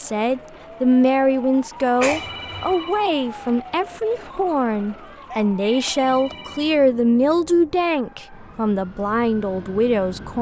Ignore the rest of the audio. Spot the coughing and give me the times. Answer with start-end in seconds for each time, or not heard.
2.0-2.7, 5.3-6.5.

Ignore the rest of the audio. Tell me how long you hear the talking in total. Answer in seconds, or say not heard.
10 s.